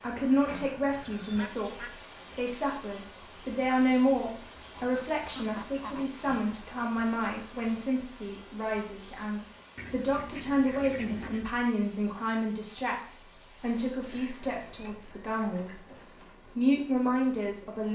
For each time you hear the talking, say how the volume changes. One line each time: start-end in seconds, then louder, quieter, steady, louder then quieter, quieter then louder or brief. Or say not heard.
0.0-17.9 steady.